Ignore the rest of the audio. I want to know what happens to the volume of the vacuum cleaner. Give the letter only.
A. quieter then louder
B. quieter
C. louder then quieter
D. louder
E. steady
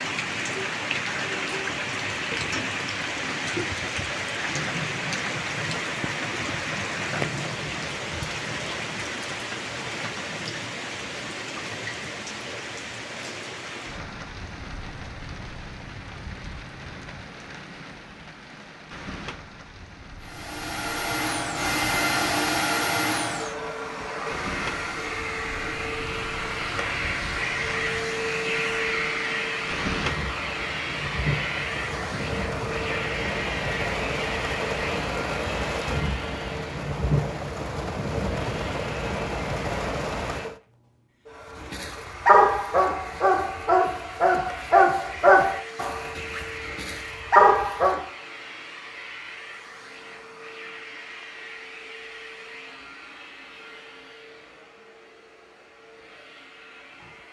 B.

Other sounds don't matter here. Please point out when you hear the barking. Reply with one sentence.
You can hear the barking from 41.6 to 48.0 s.